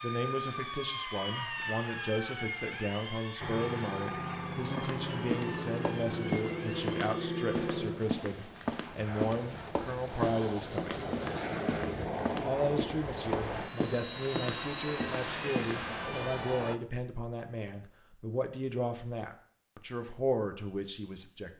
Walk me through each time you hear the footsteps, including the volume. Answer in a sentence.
You can hear the footsteps from 4.8 to 15.9 s, at a steady volume.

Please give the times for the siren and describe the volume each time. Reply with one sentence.
The siren can be heard from 0.0 to 7.7 s, getting quieter.